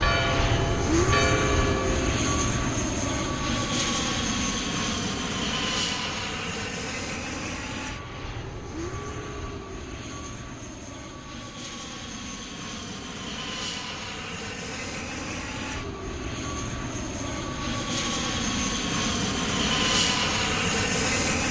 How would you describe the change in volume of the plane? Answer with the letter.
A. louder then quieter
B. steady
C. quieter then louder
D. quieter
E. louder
C.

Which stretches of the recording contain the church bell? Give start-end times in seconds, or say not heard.
0.0-2.0.